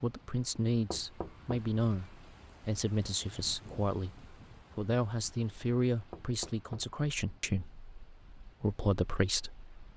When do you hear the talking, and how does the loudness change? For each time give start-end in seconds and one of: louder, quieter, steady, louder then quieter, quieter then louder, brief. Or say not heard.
0.0-9.7 steady.